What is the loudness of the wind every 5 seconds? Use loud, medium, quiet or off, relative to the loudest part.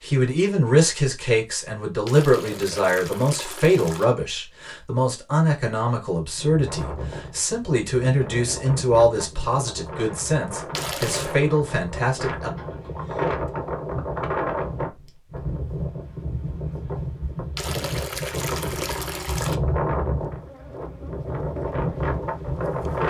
off, medium, loud, loud, loud.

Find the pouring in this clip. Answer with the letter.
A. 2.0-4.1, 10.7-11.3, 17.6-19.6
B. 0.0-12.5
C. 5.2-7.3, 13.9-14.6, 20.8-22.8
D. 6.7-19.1
A.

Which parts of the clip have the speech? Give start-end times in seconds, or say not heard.
0.0-12.5.